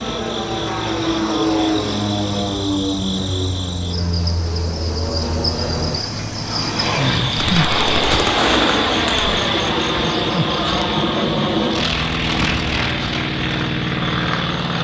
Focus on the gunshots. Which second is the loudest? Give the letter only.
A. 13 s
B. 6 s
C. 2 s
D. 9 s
D.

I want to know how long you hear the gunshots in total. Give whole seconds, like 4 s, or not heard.
2 s.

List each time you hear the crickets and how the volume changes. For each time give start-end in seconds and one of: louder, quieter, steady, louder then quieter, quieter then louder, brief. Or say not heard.
0.0-14.7 louder then quieter.